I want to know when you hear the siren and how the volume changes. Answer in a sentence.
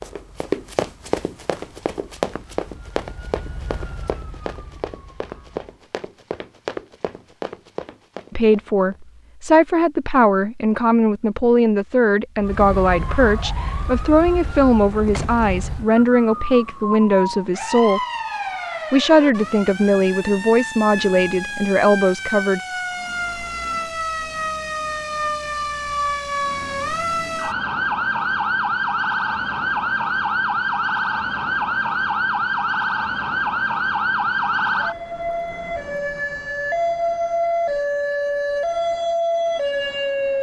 The siren can be heard from 0.0 to 5.8 s, getting louder then quieter; and from 12.3 to 40.3 s, getting louder.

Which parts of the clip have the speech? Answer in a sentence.
You can hear the speech from 8.3 to 18.0 s and from 18.9 to 22.6 s.